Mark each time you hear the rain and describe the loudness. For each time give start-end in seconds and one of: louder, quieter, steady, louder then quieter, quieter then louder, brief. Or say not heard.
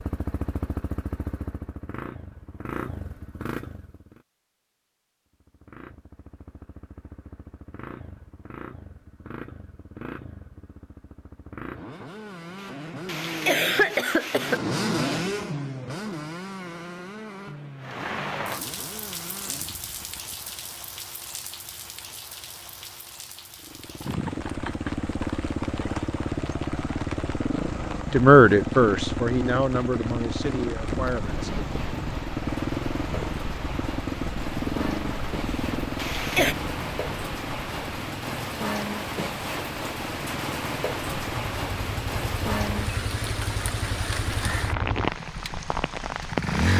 17.8-46.7 louder.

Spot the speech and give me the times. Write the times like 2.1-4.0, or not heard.
28.1-31.6.